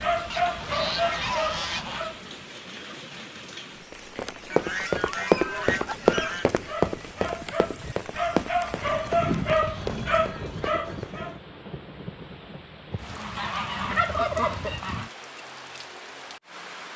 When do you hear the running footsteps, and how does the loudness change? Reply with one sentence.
The running footsteps can be heard from 3.9 to 11.2 s, getting quieter.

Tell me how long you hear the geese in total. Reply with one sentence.
You can hear the geese for 8 seconds altogether.